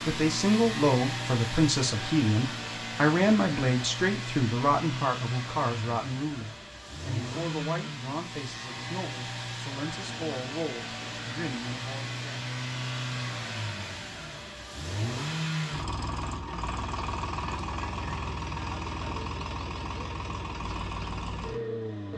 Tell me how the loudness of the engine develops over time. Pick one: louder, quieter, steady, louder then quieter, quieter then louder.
steady.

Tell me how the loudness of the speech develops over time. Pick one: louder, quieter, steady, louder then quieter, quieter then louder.
quieter.